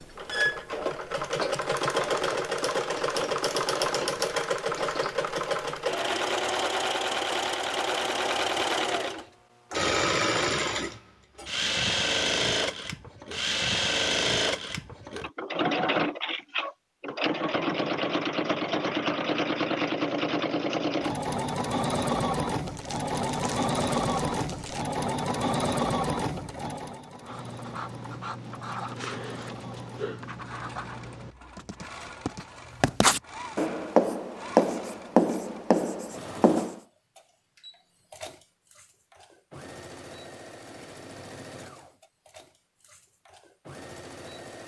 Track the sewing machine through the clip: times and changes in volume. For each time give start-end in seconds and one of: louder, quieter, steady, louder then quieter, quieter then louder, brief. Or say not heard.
0.0-44.6 quieter.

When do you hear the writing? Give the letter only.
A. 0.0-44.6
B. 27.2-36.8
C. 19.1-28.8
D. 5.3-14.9
B.